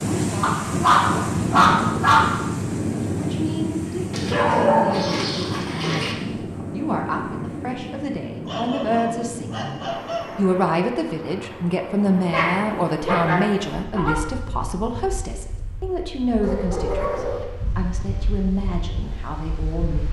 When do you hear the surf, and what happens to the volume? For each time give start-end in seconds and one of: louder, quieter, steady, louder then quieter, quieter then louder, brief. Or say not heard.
0.0-20.0 quieter.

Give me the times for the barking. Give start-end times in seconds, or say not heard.
0.4-2.3, 4.1-6.2, 8.4-10.3, 12.3-14.2, 16.4-17.4.